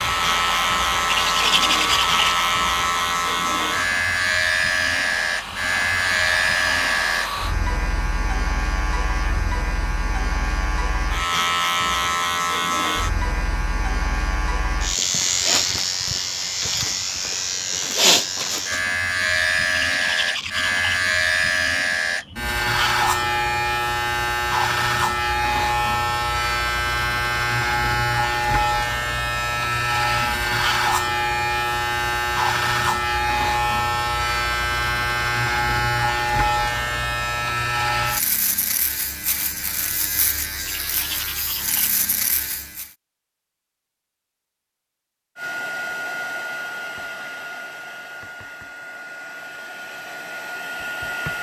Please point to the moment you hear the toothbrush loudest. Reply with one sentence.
The loudest moment of the toothbrush is at 2 seconds.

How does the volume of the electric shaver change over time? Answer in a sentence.
The loudness of the electric shaver stays about the same.